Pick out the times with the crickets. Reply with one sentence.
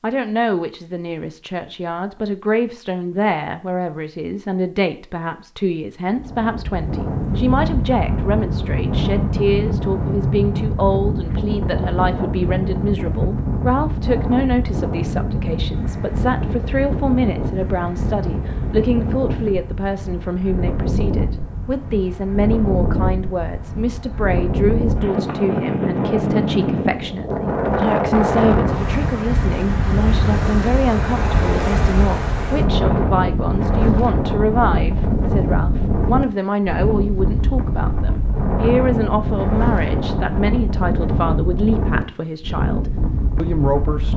The crickets can't be heard in this clip.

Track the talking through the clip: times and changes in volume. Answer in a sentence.
You can hear the talking from 0.0 to 44.1 s, at a steady volume.